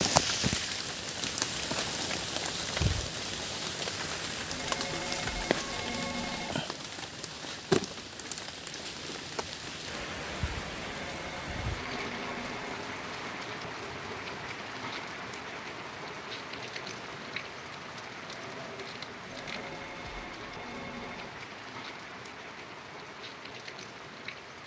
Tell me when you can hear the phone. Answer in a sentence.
You can hear the phone from 4.5 to 6.5 s, from 10.8 to 12.8 s and from 19.3 to 21.3 s.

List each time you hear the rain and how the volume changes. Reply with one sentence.
You can hear the rain from 0.0 to 24.6 s, getting quieter.